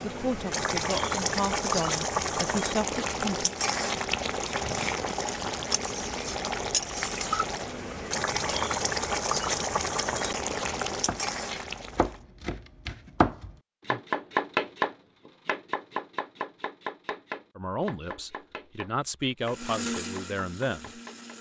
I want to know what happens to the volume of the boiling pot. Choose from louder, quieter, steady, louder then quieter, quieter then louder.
steady.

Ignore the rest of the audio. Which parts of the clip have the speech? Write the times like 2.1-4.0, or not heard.
0.0-3.5, 17.6-20.9.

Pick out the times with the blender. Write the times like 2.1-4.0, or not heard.
19.4-21.3.